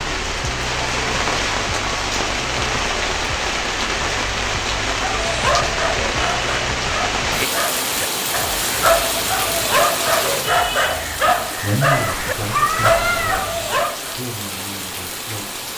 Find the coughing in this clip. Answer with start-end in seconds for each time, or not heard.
not heard.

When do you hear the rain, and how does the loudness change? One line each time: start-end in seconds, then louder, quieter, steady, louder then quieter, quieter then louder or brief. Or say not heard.
0.0-15.7 quieter.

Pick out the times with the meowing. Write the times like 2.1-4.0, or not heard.
11.8-13.4.